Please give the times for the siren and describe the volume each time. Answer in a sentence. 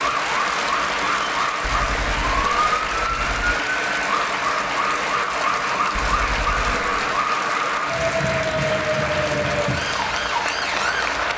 The siren can be heard from 0.0 to 11.3 s, at a steady volume.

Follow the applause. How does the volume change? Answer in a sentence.
The volume of the applause stays about the same.